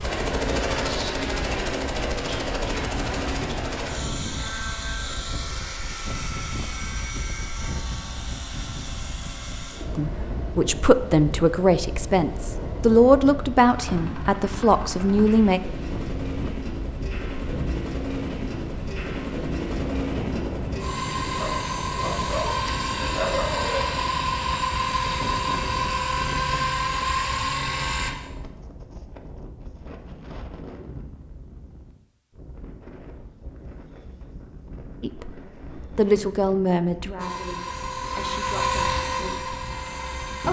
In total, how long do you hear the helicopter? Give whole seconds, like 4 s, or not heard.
31 s.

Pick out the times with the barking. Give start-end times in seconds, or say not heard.
21.4-24.0.